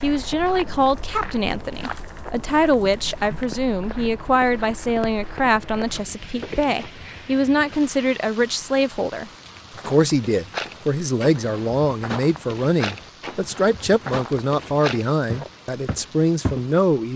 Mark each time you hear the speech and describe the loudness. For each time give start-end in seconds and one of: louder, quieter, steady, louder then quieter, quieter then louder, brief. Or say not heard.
0.0-17.1 steady.